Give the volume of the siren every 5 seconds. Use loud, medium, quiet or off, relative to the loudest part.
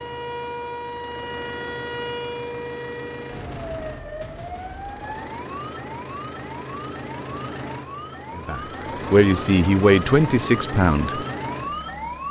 loud, medium, loud.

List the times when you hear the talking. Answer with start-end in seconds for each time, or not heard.
8.3-11.2.